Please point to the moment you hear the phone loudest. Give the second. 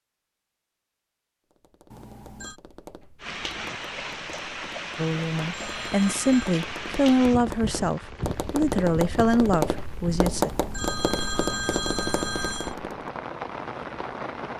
12 s.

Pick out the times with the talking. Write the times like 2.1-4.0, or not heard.
5.0-10.5.